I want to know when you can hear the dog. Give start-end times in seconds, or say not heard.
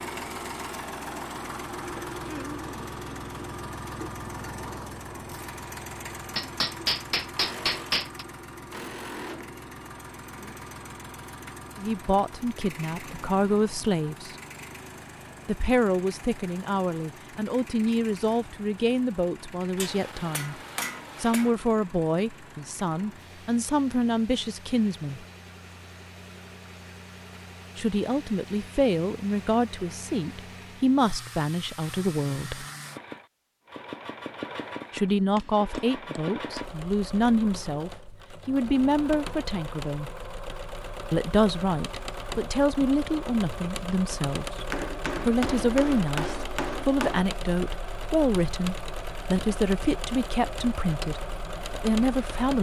not heard.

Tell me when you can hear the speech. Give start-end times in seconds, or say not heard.
11.8-14.3, 15.4-20.6, 21.2-25.2, 27.8-32.6, 34.9-40.1, 41.1-52.5.